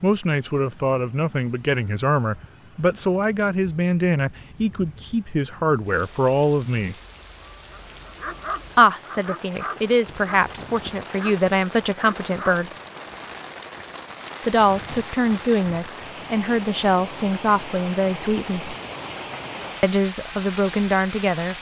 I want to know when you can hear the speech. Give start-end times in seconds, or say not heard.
0.0-7.0, 8.8-12.7, 14.4-18.8, 19.8-21.5.